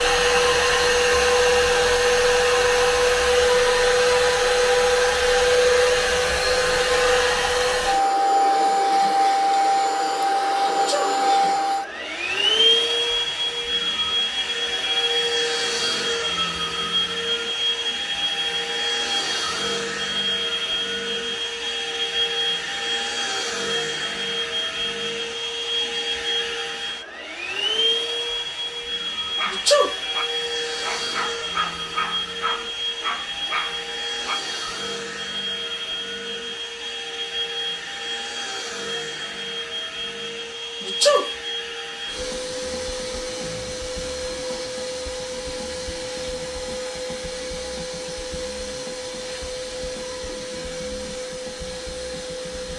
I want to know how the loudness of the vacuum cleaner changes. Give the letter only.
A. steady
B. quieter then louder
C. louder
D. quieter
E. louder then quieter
D.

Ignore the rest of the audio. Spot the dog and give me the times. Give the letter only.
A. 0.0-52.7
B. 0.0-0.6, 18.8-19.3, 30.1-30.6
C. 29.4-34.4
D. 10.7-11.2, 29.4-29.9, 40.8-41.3
C.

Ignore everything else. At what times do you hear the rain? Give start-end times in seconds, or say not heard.
not heard.